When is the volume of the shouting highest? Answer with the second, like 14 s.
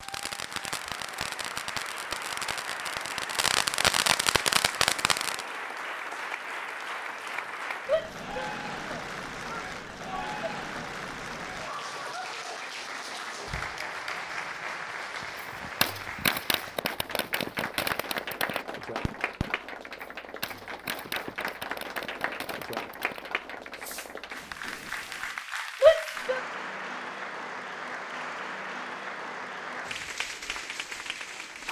26 s.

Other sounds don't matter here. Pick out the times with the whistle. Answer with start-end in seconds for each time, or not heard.
not heard.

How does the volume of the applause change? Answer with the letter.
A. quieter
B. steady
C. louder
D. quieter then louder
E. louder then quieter
B.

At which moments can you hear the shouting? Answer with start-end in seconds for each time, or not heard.
7.8-10.3, 25.8-26.4.